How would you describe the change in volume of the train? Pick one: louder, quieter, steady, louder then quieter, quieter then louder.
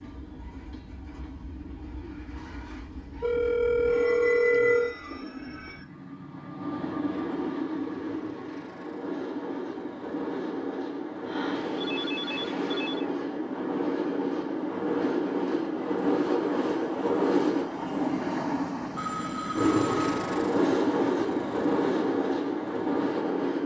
louder.